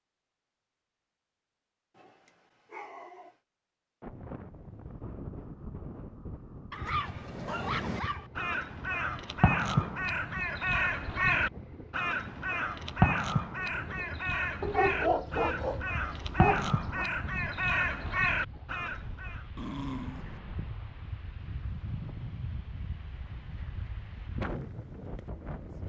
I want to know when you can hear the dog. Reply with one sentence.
The dog can be heard from 1.9 to 3.4 s, from 6.7 to 8.3 s, from 14.6 to 17.1 s and from 19.6 to 20.4 s.